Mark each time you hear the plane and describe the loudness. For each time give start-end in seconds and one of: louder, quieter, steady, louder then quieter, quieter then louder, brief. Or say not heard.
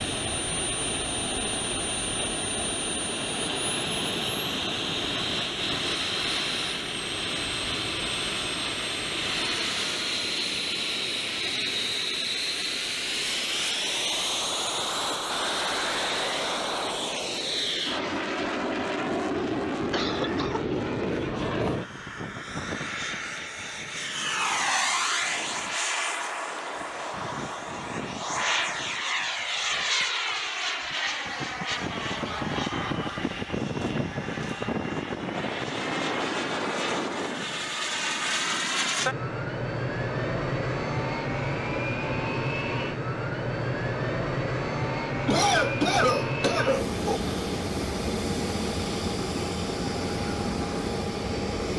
0.0-51.7 steady.